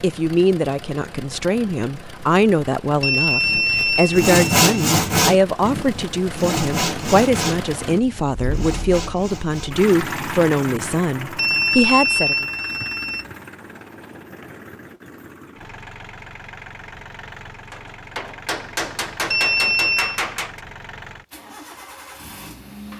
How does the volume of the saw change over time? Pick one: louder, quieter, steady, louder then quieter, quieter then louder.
quieter.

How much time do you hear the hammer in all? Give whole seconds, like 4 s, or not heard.
3 s.